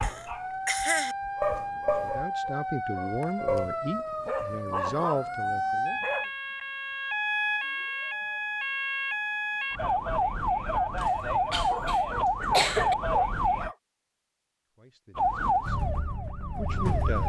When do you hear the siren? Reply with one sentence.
You can hear the siren from 0.0 to 13.7 s and from 15.2 to 17.2 s.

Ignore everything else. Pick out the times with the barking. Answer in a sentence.
You can hear the barking from 0.0 to 6.2 s and from 11.7 to 13.8 s.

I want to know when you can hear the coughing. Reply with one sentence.
The coughing can be heard from 0.0 to 1.1 s and from 10.9 to 12.9 s.